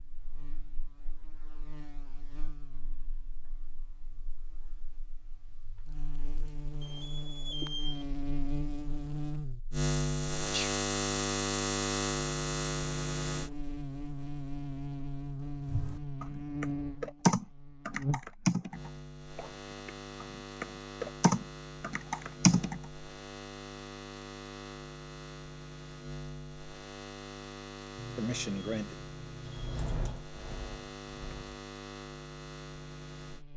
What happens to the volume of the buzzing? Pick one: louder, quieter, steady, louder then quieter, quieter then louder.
louder then quieter.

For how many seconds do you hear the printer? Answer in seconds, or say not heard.
not heard.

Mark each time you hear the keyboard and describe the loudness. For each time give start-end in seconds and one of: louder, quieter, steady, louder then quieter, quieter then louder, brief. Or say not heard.
15.7-22.9 quieter then louder
29.4-31.6 brief.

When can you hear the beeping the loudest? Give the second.
8 s.